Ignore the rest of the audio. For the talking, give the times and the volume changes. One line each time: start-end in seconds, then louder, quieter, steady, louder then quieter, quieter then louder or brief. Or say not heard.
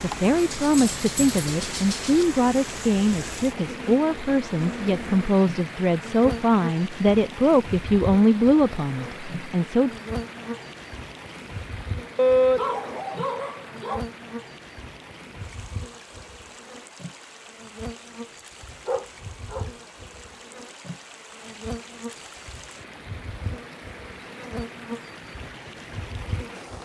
0.0-10.0 steady.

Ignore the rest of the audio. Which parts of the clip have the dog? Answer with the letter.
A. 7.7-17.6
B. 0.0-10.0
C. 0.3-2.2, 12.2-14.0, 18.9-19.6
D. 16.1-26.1
C.